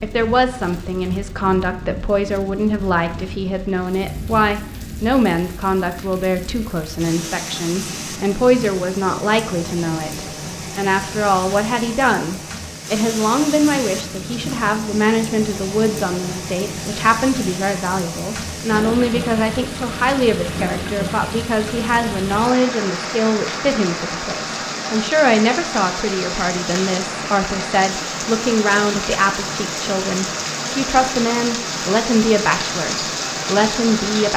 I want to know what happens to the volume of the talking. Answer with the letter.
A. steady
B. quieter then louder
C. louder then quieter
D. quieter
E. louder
A.